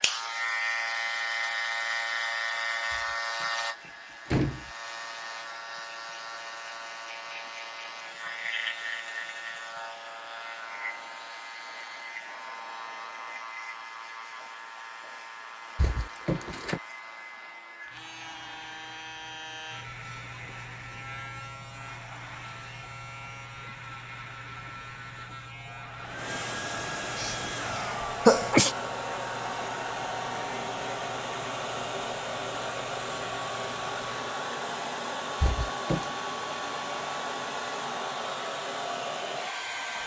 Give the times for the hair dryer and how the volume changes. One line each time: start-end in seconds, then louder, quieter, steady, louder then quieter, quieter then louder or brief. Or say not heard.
0.0-40.0 louder.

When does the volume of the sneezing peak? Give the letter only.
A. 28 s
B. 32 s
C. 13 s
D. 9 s
A.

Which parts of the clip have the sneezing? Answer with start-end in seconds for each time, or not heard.
27.1-28.8.